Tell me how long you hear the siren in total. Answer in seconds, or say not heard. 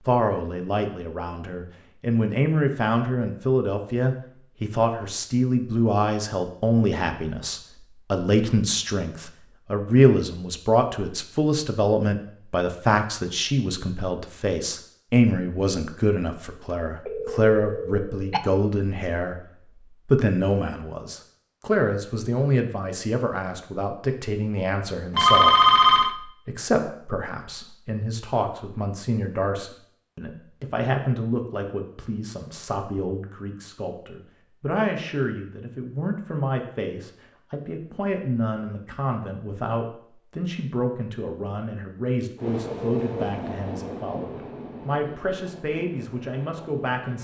not heard.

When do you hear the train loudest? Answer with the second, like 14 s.
43 s.